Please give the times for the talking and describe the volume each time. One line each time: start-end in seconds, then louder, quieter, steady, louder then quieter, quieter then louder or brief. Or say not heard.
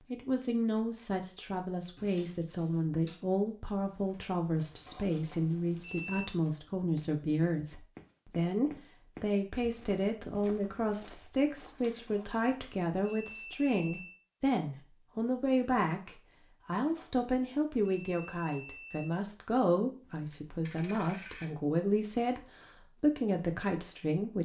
0.1-24.4 steady.